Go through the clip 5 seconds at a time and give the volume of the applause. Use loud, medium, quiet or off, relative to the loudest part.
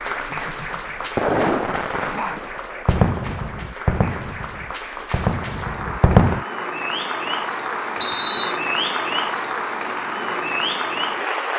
medium, loud, loud.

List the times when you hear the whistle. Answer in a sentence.
The whistle can be heard from 8.0 to 8.6 s.